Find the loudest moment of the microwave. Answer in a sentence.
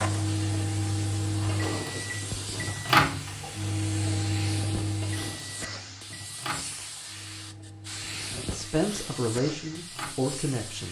The volume of the microwave peaks at 3 seconds.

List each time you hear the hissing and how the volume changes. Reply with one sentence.
The hissing can be heard from 0.0 to 10.8 s, at a steady volume.